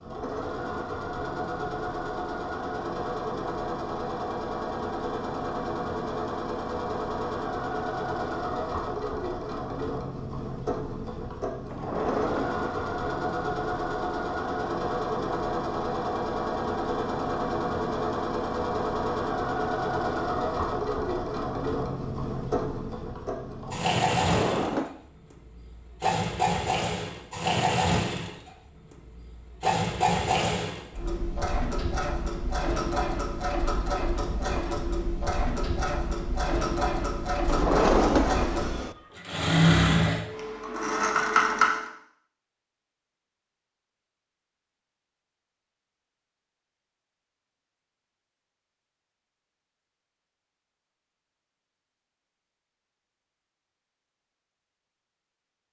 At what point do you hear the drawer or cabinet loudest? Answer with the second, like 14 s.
38 s.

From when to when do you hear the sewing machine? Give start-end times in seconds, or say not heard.
0.0-41.9.